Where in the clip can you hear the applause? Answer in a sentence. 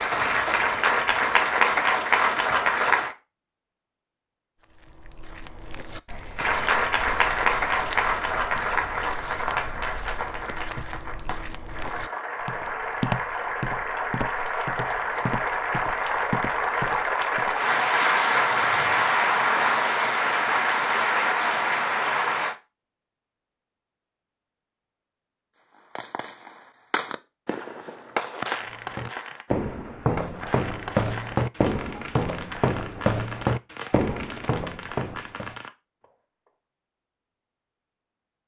You can hear the applause from 0.0 to 3.1 s and from 6.3 to 22.6 s.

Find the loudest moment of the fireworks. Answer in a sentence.
The loudest moment of the fireworks is at 28 seconds.